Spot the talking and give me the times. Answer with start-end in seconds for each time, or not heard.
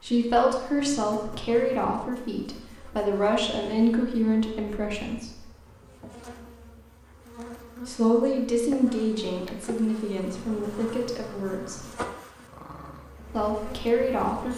0.0-5.5, 7.8-11.8, 13.3-14.5.